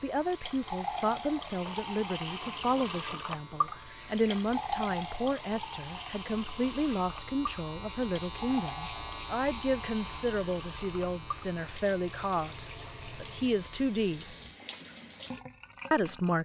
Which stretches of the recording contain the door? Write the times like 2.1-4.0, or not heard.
not heard.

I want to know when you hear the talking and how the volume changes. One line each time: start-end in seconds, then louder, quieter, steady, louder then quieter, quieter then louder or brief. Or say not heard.
0.0-14.2 steady
15.9-16.3 brief.